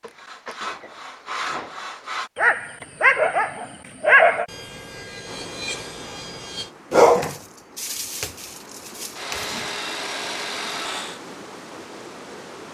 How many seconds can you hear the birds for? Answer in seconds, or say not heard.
not heard.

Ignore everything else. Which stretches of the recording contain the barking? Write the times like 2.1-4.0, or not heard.
2.4-4.5, 6.9-9.6.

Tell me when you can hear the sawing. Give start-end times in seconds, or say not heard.
0.0-2.3, 4.5-6.7, 9.2-11.2.